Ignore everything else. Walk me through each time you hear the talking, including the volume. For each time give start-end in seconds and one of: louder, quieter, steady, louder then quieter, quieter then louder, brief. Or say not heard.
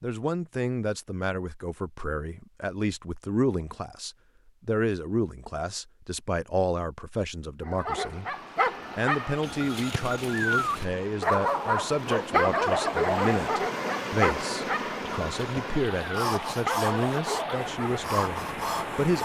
0.0-19.2 steady.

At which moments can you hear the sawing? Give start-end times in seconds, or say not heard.
15.9-19.2.